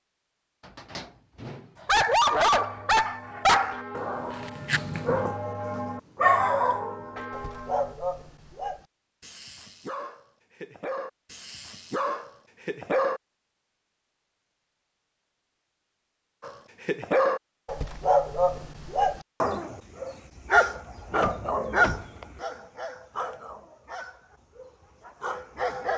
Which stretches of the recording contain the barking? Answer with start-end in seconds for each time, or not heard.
1.9-13.2, 16.4-25.9.